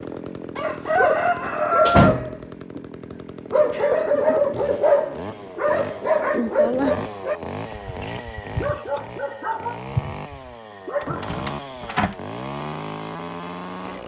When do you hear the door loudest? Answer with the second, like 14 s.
2 s.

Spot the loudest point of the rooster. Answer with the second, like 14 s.
2 s.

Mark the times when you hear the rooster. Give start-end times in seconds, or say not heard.
0.6-2.1.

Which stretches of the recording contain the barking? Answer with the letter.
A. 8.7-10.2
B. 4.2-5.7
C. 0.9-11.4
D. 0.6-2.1
C.